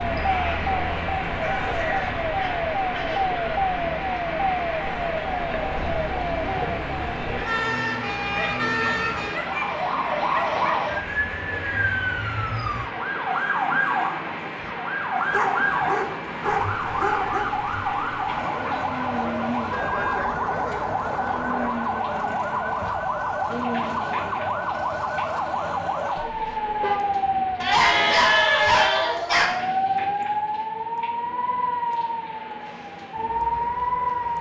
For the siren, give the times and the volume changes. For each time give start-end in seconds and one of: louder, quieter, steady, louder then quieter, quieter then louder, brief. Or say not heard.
0.0-34.3 steady.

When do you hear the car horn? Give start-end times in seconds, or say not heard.
2.4-3.4, 19.7-20.3, 26.2-27.0.